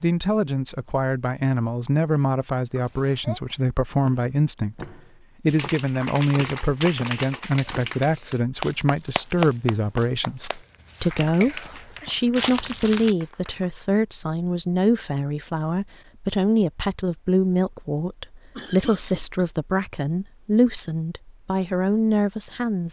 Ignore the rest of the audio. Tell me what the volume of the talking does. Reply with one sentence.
The loudness of the talking stays about the same.